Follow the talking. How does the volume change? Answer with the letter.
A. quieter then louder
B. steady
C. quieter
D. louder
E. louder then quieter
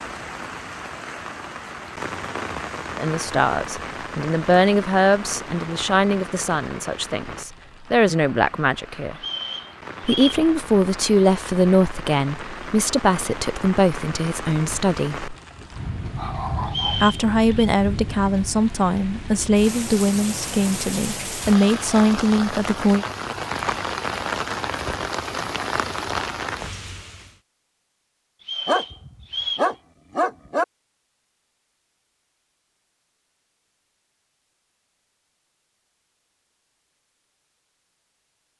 B.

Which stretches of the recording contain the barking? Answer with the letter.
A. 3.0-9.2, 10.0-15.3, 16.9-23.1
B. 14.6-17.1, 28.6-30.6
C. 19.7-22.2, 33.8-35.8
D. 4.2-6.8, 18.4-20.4
B.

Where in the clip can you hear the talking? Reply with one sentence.
The talking can be heard from 3.0 to 9.2 s, from 10.0 to 15.3 s and from 16.9 to 23.1 s.